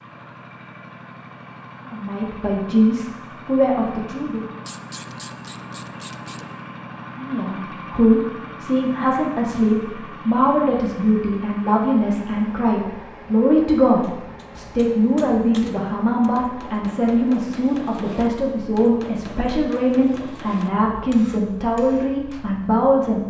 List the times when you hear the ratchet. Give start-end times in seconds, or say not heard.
4.6-6.5.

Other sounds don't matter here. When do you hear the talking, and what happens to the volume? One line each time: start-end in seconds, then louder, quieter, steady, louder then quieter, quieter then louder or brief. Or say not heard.
1.9-4.5 brief
7.2-23.2 steady.